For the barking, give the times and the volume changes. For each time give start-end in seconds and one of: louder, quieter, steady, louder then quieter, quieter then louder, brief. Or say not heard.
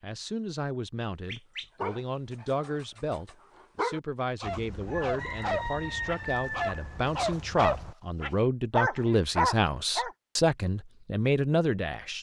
1.2-10.1 louder.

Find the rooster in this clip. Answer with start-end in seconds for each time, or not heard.
4.4-8.0.